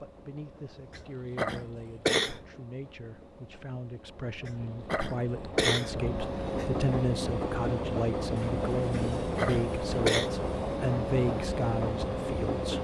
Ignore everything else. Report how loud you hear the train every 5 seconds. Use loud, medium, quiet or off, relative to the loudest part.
quiet, loud, loud.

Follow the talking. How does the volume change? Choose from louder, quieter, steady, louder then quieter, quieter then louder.
louder.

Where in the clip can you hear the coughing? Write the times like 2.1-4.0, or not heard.
0.9-2.5, 4.5-6.7, 8.9-10.3.